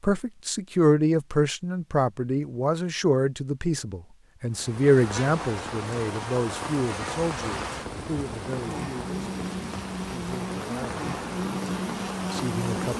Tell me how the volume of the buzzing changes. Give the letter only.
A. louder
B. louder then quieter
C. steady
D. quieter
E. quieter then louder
A.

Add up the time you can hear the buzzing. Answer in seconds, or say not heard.
8 s.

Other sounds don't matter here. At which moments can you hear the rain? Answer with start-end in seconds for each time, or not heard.
4.5-12.9.